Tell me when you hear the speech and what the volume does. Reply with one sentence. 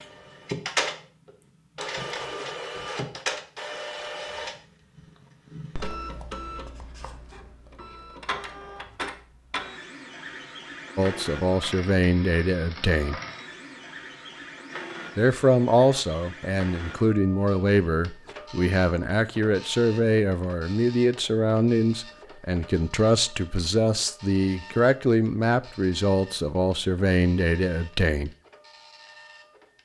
You can hear the speech briefly from 10.9 to 13.2 s; and from 15.2 to 28.3 s, at a steady volume.